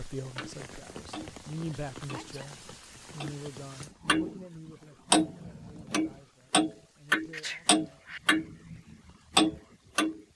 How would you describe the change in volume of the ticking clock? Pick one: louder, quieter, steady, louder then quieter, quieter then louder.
louder.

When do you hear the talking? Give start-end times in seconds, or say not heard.
0.0-8.0.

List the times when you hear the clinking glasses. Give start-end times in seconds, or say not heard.
not heard.